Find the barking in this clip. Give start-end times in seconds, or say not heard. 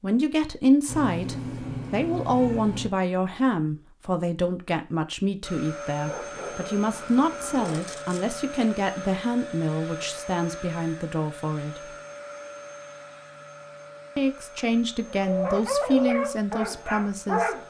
6.0-8.1, 15.1-17.6.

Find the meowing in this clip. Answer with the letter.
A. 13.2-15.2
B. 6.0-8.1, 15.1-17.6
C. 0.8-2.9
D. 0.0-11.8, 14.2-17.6
C.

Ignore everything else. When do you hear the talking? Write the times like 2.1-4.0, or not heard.
0.0-11.8, 14.2-17.6.